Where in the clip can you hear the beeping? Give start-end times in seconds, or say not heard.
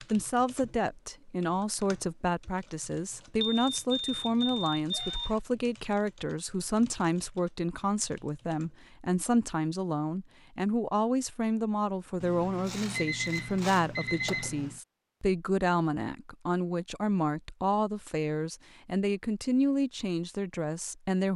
3.4-5.4, 12.2-14.8.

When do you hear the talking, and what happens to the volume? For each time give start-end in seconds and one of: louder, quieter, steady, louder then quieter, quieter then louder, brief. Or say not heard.
0.1-21.3 steady.